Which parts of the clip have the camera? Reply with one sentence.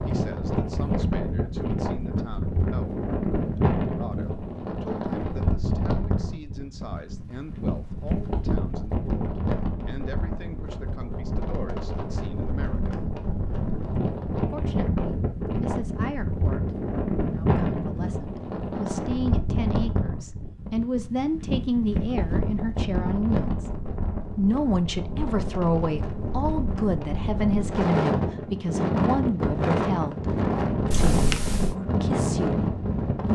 You can hear the camera from 30.9 to 31.8 s.